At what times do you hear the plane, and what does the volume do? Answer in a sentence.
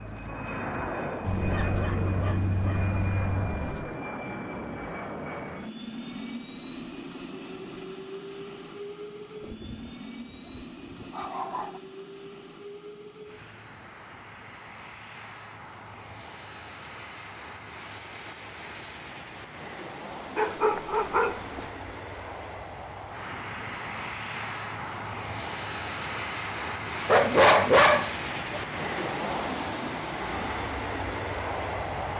You can hear the plane from 0.0 to 32.1 s, getting quieter then louder.